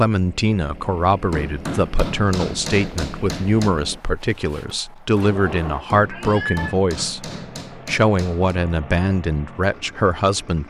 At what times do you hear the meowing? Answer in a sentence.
The meowing can be heard from 6.0 to 6.8 s.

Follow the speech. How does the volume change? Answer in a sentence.
The loudness of the speech stays about the same.